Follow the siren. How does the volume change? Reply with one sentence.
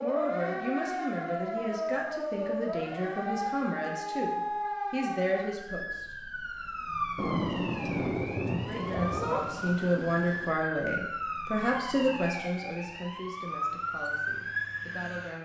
The volume of the siren stays about the same.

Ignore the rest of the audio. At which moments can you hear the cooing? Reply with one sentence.
The cooing can't be heard in this clip.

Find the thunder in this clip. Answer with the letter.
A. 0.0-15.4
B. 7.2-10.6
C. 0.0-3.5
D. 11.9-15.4
B.